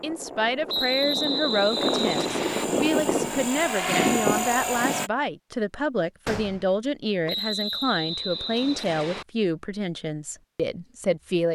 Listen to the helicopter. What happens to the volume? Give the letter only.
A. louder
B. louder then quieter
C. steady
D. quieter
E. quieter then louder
A.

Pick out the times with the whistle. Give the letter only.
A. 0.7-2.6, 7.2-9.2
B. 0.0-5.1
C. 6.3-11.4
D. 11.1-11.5
A.